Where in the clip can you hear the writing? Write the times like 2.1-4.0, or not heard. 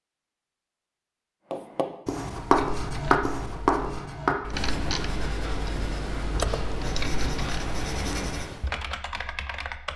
1.5-8.7.